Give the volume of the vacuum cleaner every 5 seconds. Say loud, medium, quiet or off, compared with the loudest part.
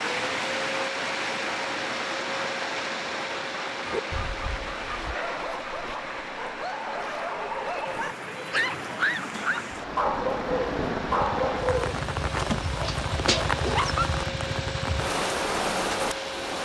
loud, medium, loud, loud.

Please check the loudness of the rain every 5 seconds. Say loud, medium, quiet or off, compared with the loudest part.
loud, medium, loud, loud.